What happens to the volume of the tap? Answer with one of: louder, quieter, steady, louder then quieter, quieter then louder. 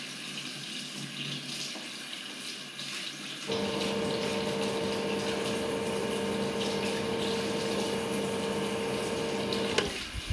steady.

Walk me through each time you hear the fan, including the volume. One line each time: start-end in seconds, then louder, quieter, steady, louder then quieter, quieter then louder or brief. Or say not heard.
3.5-10.2 steady.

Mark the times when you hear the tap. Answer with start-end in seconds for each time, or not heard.
0.0-10.2.